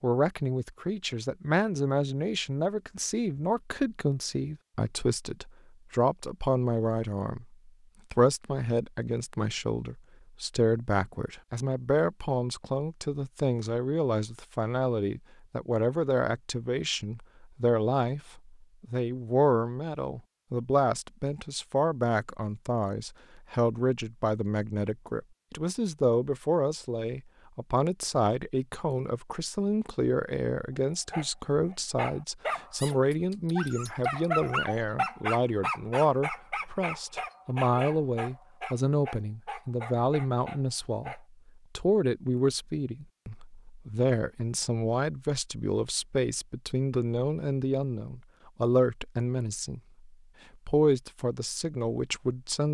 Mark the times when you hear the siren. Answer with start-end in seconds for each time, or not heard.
not heard.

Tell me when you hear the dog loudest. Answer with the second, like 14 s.
34 s.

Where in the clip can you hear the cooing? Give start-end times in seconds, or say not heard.
not heard.